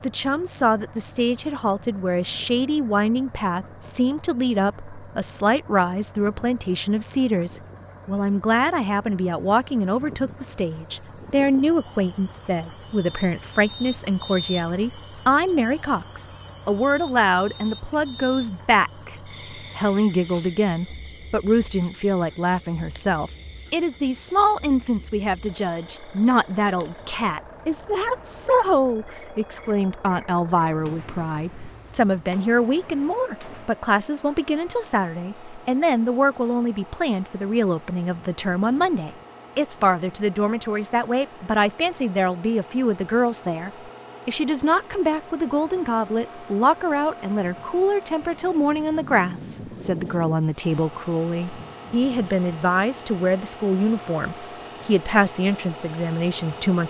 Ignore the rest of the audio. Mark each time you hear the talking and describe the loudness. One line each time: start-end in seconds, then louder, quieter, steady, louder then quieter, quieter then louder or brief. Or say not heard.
0.0-56.8 steady.